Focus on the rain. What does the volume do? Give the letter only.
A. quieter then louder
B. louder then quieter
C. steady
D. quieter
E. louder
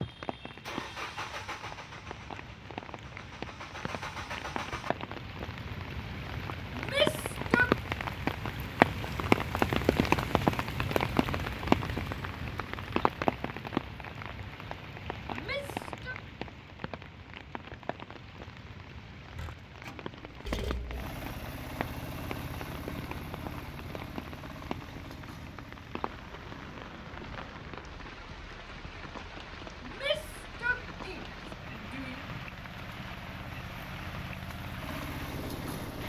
B.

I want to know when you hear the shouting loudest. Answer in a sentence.
The volume of the shouting peaks at 7 seconds.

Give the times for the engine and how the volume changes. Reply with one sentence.
You can hear the engine from 0.0 to 4.9 s, getting quieter then louder; and from 19.4 to 36.0 s, getting quieter then louder.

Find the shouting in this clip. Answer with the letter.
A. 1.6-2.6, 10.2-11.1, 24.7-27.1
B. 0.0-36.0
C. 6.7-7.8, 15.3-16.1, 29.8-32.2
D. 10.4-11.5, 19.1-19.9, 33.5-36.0
C.